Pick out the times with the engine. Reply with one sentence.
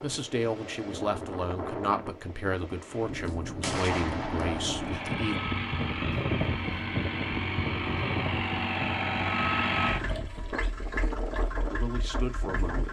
The engine can be heard from 4.8 to 12.8 s.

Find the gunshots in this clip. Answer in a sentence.
You can hear the gunshots from 3.2 to 5.2 s.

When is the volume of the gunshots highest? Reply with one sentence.
The loudest moment of the gunshots is at 4 seconds.